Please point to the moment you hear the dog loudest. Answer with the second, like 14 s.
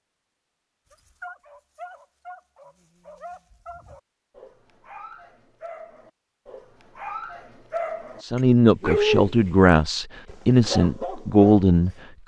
9 s.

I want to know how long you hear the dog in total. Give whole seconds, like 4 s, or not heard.
11 s.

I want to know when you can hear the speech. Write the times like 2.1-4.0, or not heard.
8.2-12.2.